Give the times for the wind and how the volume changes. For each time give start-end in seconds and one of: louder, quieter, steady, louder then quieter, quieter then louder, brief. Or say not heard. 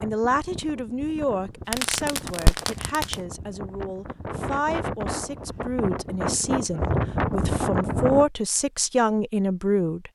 0.0-8.2 louder.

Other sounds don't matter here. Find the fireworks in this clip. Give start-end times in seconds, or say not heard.
1.7-3.1.